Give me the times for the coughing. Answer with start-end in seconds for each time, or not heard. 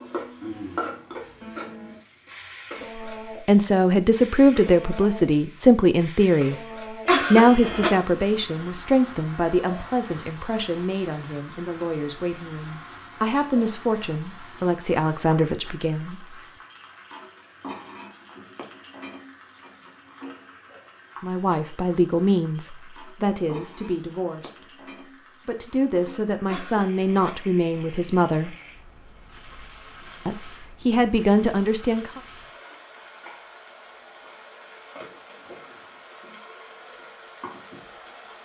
7.0-7.9, 26.4-27.3.